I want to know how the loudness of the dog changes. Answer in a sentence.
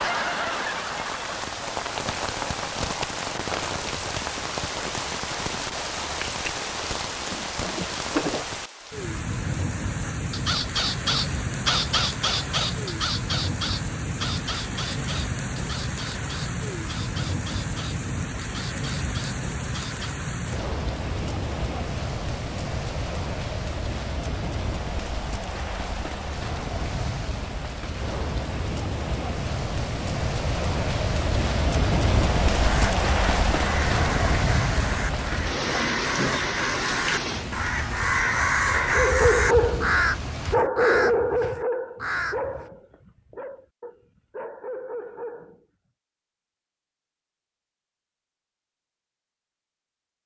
The volume of the dog goes down, then up.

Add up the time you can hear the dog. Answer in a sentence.
The dog can be heard for 7 seconds in total.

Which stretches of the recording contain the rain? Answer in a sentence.
The rain can be heard from 0.0 to 40.5 s.